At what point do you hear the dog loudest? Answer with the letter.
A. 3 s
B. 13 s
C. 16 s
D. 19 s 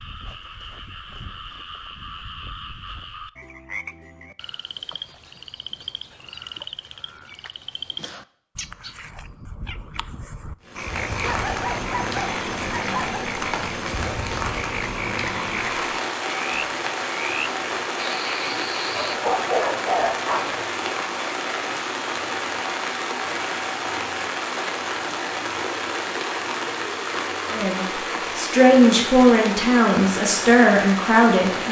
D.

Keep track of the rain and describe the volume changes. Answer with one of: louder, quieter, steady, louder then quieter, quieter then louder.
steady.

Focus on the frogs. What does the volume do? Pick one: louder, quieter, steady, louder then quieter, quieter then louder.
louder.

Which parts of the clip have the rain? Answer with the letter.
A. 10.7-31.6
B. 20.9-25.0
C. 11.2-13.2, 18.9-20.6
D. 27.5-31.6
A.